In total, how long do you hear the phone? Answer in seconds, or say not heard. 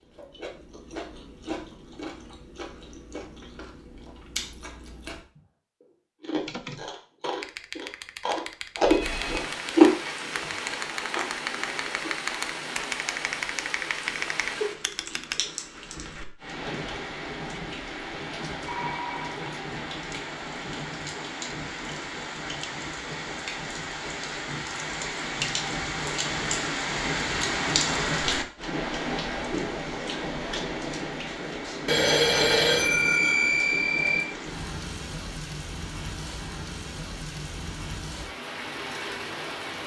4 s.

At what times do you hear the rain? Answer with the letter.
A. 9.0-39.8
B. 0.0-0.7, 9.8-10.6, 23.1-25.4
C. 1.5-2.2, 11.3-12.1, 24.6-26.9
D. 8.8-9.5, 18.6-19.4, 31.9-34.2
A.